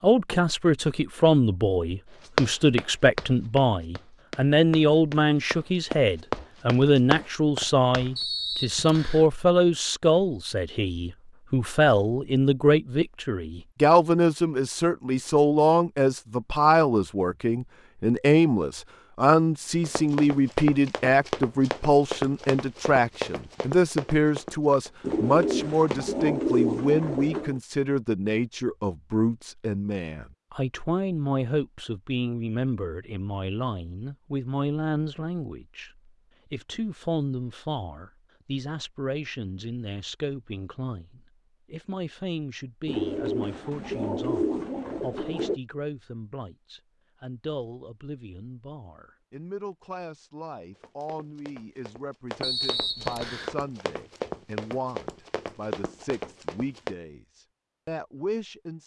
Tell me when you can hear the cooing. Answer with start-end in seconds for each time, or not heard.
25.0-27.6, 42.9-45.6.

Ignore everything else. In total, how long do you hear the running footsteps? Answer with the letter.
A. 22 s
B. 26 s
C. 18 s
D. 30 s
C.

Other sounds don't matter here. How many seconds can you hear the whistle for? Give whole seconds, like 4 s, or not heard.
2 s.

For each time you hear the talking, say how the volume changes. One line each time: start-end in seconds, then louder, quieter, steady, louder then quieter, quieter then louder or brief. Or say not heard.
0.0-58.8 quieter.